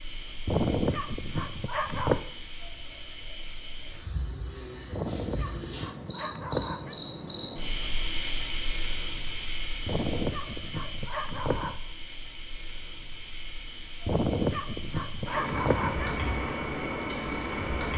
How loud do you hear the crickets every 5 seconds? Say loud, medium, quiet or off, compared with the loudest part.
medium, loud, medium, medium.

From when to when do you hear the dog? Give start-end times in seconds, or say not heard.
0.5-2.2, 4.9-7.0, 9.8-11.8, 14.1-16.1.